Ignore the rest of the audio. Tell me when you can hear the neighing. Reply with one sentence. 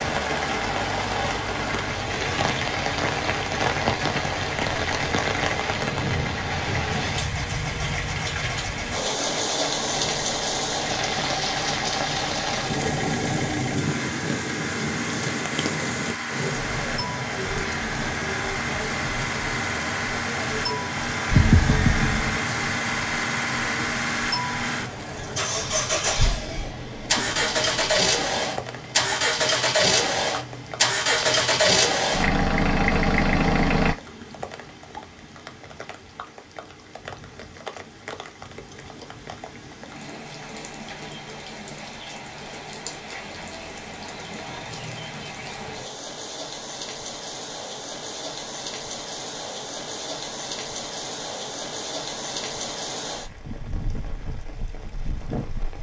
The neighing can be heard from 21.3 to 22.4 s.